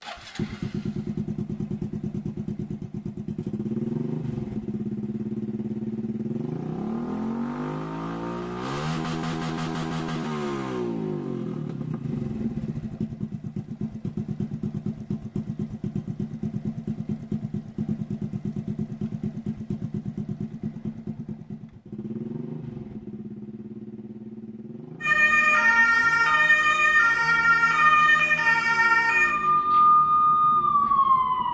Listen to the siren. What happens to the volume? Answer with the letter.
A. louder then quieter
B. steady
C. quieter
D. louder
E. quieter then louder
B.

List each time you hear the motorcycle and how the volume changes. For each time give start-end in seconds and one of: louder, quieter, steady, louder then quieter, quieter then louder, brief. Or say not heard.
0.0-31.4 quieter.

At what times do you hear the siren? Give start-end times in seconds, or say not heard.
25.0-31.4.